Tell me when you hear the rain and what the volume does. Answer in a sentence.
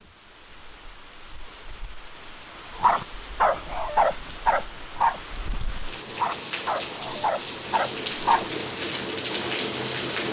The rain can be heard from 0.0 to 10.2 s, getting louder.